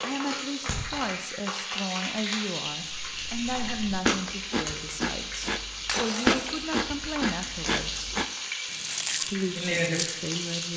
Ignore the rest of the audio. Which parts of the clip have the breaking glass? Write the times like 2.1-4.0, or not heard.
5.8-6.7.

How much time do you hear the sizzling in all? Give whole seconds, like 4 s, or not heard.
11 s.